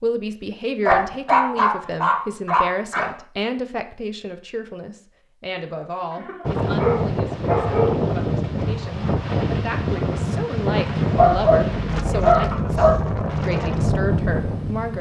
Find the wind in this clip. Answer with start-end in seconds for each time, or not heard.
6.5-14.9.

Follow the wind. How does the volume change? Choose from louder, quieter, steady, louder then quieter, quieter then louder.
steady.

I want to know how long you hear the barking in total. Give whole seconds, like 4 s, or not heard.
6 s.